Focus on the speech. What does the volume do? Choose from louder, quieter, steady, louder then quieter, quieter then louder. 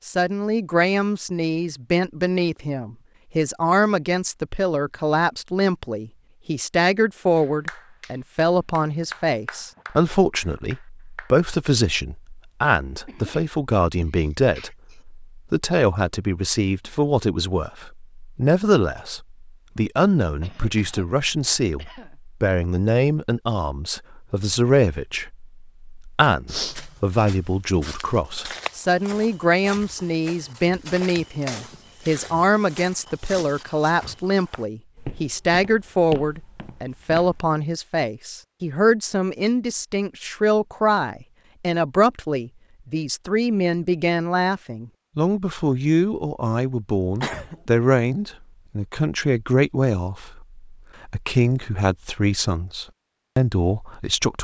steady.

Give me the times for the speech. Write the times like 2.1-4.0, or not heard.
0.1-54.4.